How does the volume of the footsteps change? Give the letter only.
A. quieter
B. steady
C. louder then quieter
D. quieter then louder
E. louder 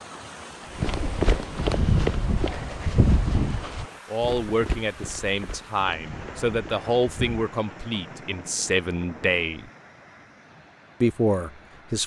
A.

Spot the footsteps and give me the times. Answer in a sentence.
You can hear the footsteps from 0.8 to 7.5 s.